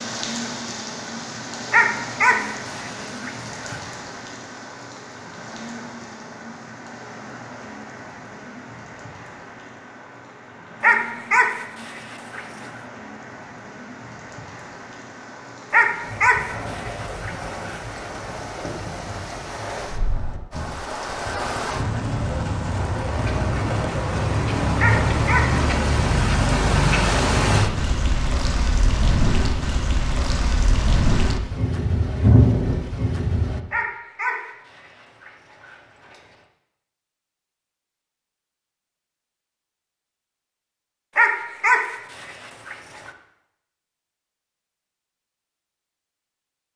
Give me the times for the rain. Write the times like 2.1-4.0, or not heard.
0.0-33.6.